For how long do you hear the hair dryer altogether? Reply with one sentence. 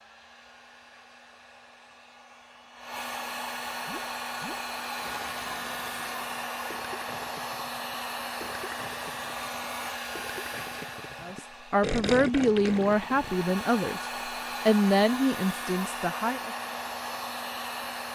You can hear the hair dryer for 18 seconds altogether.